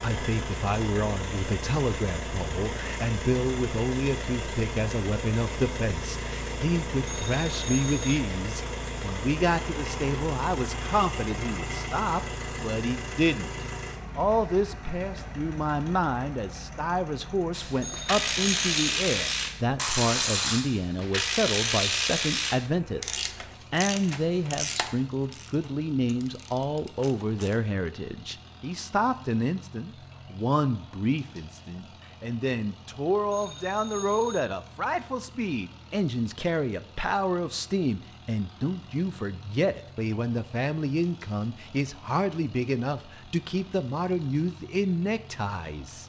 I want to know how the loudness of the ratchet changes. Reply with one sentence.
The loudness of the ratchet goes down.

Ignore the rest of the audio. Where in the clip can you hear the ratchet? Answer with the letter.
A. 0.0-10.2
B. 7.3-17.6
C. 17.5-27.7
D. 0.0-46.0
C.